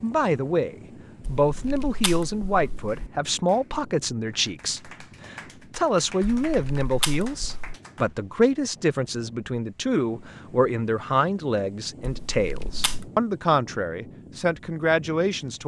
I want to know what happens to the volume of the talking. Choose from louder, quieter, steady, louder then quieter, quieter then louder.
steady.